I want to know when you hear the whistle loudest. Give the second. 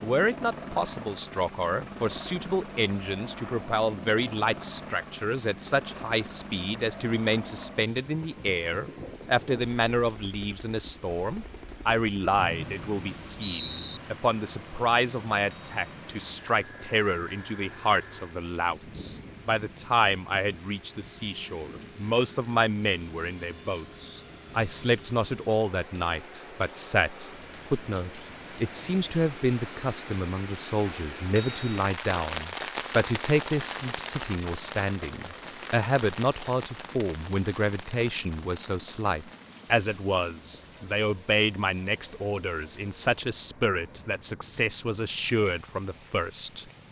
14 s.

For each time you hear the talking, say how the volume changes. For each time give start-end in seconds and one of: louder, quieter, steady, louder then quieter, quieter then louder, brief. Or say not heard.
0.0-46.6 steady.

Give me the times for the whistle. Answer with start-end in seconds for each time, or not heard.
12.3-14.0.